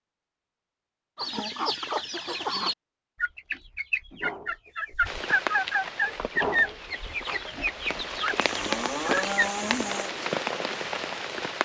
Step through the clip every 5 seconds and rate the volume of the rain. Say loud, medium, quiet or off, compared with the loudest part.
off, loud, loud.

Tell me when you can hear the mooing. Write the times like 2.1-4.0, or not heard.
8.4-10.1.